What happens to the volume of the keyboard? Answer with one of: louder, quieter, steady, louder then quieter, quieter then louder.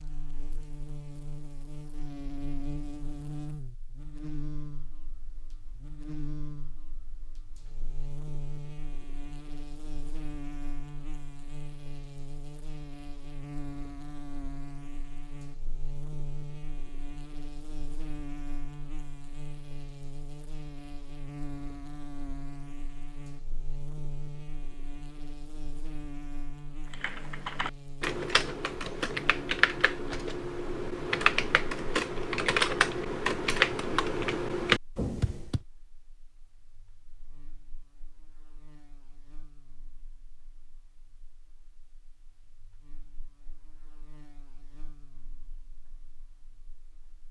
louder.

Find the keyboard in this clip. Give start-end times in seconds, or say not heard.
26.9-35.6.